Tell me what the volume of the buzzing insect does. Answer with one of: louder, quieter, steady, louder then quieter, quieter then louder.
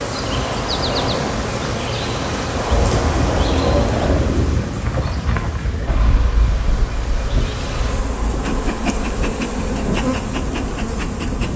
quieter then louder.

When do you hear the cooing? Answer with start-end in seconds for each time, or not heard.
2.7-4.7.